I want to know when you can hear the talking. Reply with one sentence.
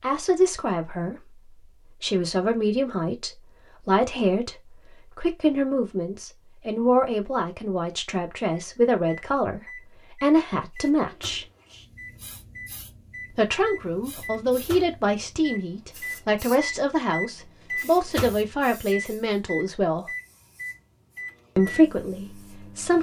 You can hear the talking from 0.0 to 11.4 s, from 13.3 to 20.1 s and from 21.6 to 22.9 s.